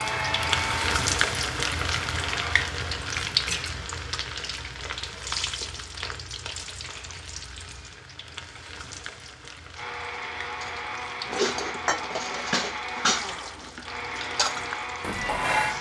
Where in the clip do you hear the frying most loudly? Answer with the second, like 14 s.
1 s.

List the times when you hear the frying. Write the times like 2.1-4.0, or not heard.
0.0-15.7.